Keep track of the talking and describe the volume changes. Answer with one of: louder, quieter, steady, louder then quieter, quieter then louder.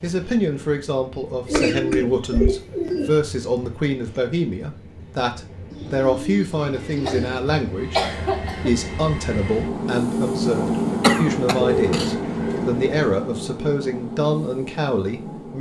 steady.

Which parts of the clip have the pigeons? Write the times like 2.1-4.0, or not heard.
1.4-3.1, 5.7-7.5, 11.6-12.9.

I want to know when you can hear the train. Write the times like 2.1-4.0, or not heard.
0.0-15.5.